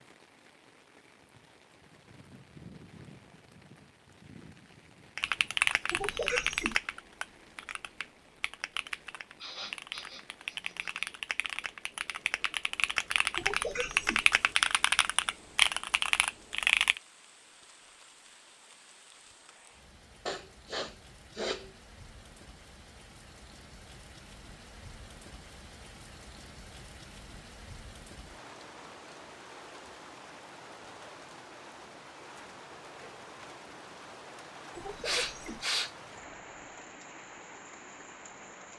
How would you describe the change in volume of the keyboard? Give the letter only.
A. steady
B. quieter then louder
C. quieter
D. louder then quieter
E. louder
B.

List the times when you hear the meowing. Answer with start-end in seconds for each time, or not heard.
5.9-6.8, 13.3-14.2, 34.8-35.6.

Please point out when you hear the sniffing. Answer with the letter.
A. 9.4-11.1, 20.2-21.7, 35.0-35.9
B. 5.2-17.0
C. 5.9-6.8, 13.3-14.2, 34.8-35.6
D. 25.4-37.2
A.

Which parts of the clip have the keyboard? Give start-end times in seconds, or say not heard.
5.2-17.0.